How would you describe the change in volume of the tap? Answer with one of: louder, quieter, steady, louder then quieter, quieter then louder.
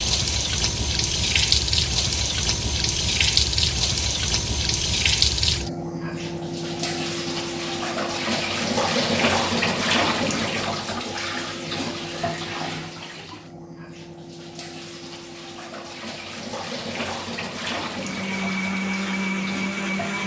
quieter.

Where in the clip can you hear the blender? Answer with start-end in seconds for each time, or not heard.
17.9-20.2.